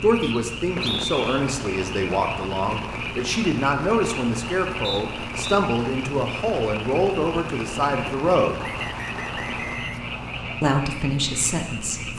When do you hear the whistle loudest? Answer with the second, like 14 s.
1 s.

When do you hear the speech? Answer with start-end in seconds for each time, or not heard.
0.0-8.6, 10.6-12.1.